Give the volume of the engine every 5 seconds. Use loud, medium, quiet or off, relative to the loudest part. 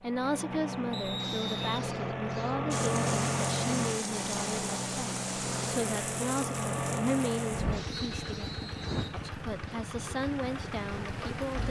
loud, loud, medium.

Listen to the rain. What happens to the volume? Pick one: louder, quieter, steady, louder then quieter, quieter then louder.
quieter.